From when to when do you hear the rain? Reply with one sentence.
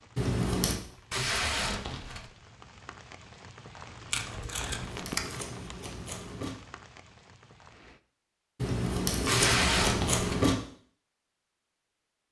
You can hear the rain from 0.0 to 8.0 s.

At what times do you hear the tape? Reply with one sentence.
You can hear the tape from 1.1 to 2.3 s, from 4.1 to 5.2 s and from 9.2 to 10.4 s.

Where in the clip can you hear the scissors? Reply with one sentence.
The scissors can be heard from 0.1 to 0.8 s, from 4.5 to 6.5 s and from 8.6 to 10.6 s.